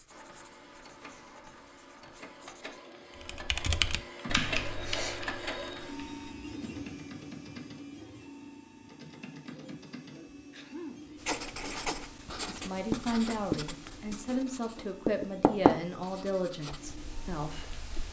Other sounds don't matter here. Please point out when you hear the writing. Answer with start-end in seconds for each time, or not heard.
0.0-2.8, 11.2-18.0.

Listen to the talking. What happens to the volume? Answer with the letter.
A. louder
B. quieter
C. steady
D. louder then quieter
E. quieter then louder
B.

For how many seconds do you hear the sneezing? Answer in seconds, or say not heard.
2 s.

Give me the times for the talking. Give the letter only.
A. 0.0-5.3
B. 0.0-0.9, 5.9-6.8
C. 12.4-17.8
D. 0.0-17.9
C.